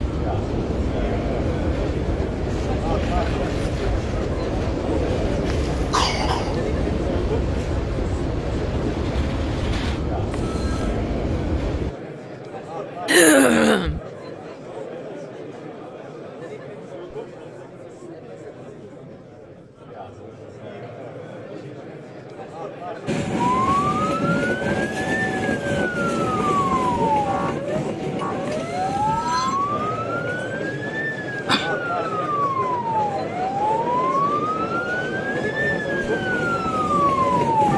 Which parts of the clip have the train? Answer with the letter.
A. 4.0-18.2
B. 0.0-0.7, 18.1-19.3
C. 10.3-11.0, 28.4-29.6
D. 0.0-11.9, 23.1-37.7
D.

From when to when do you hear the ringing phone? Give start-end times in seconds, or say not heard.
10.3-11.0, 28.4-29.6.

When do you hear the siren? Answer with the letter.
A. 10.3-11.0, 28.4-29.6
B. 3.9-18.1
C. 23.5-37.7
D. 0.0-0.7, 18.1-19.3
C.